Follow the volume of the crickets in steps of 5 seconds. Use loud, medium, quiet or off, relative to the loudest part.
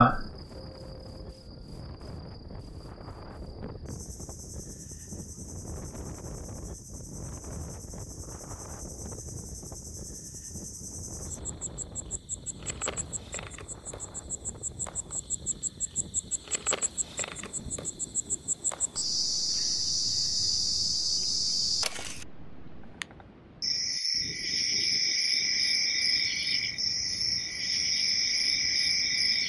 medium, quiet, quiet, medium, loud, loud.